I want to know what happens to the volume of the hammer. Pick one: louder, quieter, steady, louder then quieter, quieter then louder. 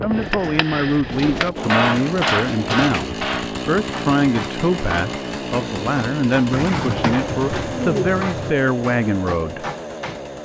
louder then quieter.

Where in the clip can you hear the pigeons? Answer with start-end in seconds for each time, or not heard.
1.1-3.1, 6.5-8.6.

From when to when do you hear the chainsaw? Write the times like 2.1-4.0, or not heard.
0.0-10.3.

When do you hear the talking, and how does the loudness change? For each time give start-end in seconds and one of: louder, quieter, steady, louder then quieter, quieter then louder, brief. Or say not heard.
0.0-9.7 steady.